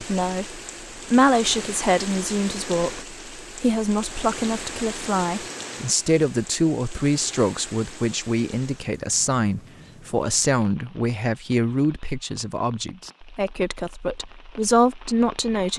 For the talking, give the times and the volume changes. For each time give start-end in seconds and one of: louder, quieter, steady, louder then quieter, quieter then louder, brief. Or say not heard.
0.0-15.7 steady.